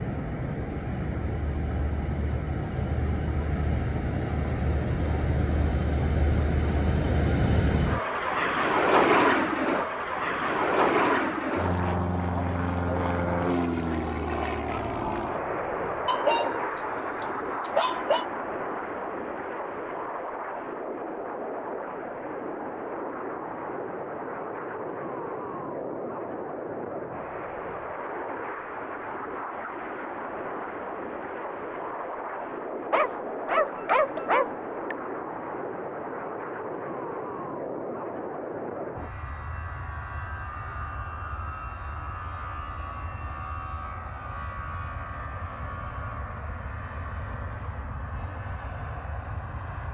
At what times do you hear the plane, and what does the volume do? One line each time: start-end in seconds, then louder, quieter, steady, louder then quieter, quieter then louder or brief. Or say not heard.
0.0-49.8 quieter.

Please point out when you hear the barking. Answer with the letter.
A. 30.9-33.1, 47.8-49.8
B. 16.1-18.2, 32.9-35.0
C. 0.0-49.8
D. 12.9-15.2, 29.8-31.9
B.